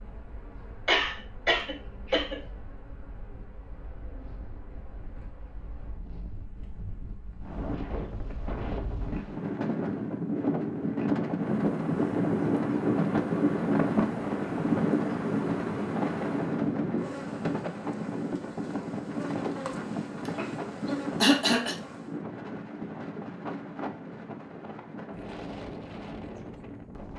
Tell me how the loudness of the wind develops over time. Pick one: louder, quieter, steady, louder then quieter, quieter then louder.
louder then quieter.